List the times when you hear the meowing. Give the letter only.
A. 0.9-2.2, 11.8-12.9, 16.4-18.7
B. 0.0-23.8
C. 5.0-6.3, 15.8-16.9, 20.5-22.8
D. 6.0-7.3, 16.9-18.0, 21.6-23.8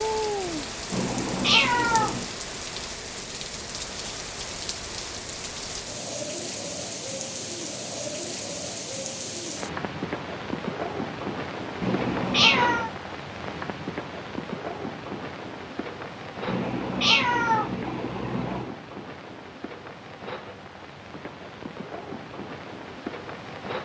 A.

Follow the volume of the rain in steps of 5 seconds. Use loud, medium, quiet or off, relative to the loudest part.
loud, loud, loud, medium, medium.